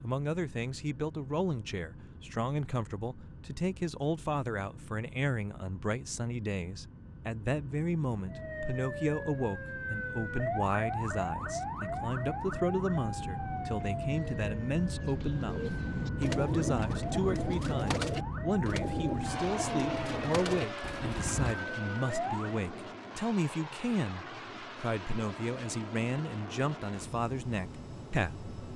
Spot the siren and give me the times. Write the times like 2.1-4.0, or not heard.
8.2-22.6.